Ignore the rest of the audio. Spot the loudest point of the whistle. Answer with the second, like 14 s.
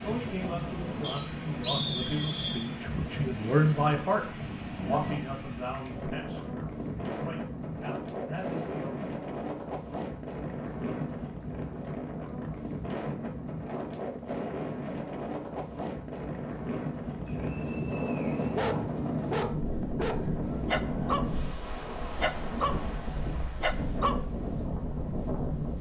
2 s.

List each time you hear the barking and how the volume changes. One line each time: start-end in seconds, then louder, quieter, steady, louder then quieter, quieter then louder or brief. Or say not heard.
18.6-24.6 steady.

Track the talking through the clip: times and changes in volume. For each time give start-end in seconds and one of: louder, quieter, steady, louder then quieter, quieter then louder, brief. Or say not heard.
0.0-9.1 louder then quieter.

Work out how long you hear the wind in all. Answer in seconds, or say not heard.
26 s.